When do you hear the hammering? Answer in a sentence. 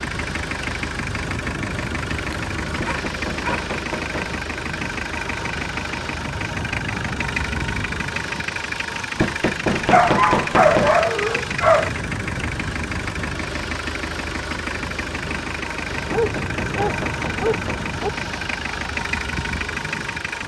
The hammering can be heard from 2.8 to 4.3 s, from 9.2 to 11.0 s and from 16.1 to 17.9 s.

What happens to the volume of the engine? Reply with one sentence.
The loudness of the engine stays about the same.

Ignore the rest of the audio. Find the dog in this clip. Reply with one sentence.
The dog can be heard from 2.2 to 3.7 s, from 9.9 to 11.9 s and from 16.1 to 18.1 s.